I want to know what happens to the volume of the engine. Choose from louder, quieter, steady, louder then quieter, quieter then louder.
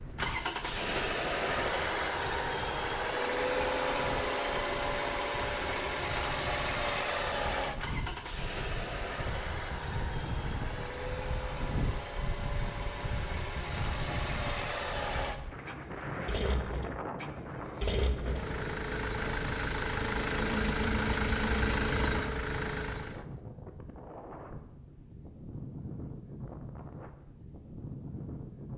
quieter then louder.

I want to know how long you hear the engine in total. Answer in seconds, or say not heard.
23 s.